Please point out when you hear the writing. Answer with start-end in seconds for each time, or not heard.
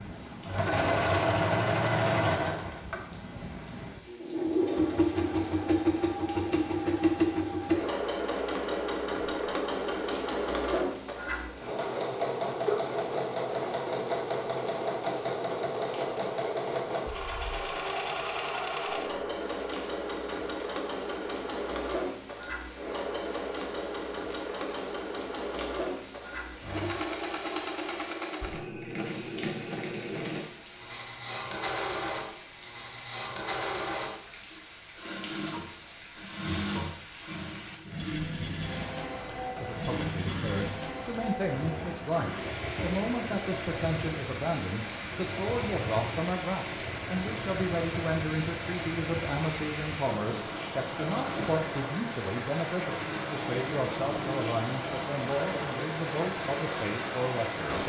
not heard.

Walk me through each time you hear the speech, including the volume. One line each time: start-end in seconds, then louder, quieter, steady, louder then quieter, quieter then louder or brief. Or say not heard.
39.4-57.8 steady.